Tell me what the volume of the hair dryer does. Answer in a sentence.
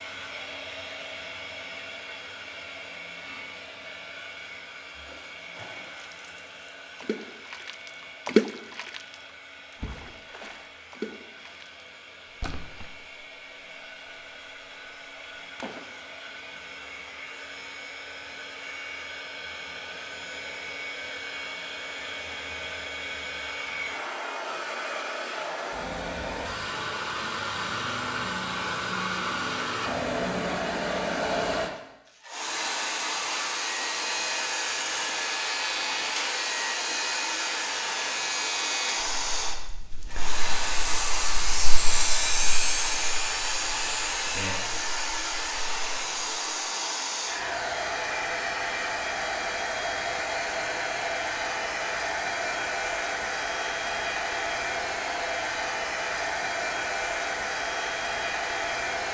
The loudness of the hair dryer goes up.